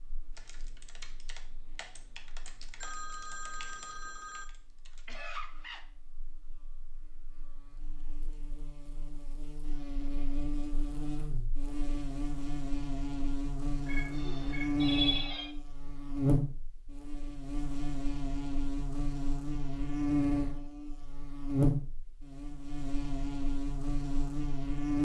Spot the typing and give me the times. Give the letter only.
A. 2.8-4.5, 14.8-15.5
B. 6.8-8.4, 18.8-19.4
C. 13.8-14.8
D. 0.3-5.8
D.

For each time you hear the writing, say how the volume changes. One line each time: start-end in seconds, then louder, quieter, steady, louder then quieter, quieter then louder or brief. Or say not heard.
not heard.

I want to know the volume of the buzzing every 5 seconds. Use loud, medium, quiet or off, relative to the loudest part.
quiet, quiet, loud, loud, loud.